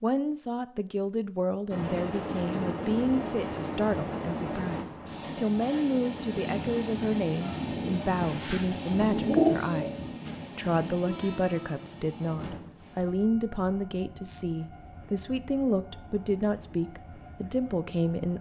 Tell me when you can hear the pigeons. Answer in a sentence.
The pigeons can be heard from 8.2 to 10.6 s.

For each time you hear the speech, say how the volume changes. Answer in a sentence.
You can hear the speech from 0.0 to 18.3 s, at a steady volume.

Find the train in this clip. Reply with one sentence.
The train can be heard from 1.7 to 18.3 s.